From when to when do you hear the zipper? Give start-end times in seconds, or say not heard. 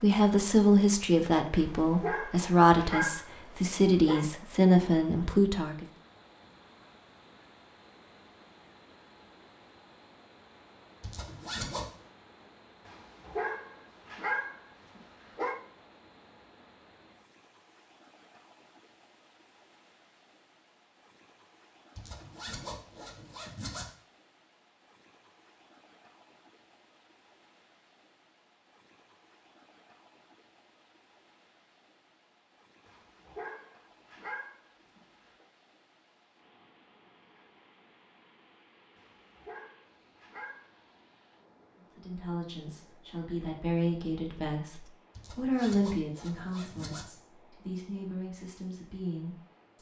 11.0-11.9, 21.9-23.9, 45.1-47.0.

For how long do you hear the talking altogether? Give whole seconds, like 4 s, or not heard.
14 s.